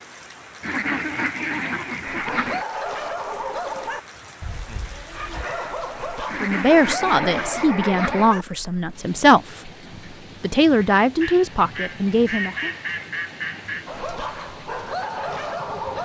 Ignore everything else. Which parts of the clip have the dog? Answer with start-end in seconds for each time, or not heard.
2.0-8.4, 13.8-16.0.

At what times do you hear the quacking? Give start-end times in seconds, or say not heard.
0.6-2.6, 6.2-8.3, 11.2-14.0.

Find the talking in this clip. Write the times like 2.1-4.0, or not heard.
6.4-9.7, 10.4-12.7.